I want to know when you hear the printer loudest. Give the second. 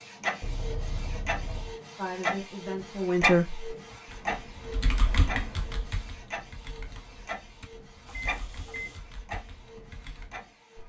3 s.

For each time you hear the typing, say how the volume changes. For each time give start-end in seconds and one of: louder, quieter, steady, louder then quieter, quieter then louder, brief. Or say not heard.
3.7-10.5 quieter.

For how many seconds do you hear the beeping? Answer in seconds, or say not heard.
2 s.